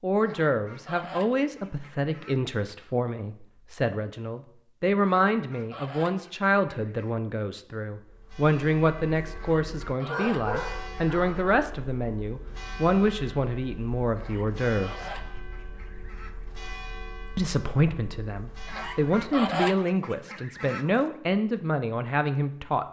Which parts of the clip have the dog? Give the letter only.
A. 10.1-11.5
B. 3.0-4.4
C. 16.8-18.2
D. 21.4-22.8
A.